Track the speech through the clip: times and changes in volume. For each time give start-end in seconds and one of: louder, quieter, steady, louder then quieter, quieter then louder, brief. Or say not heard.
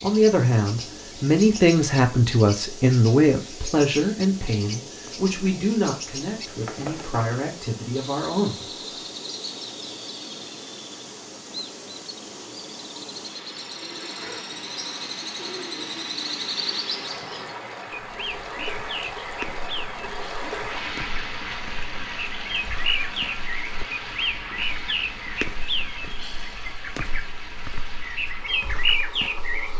0.0-8.7 quieter.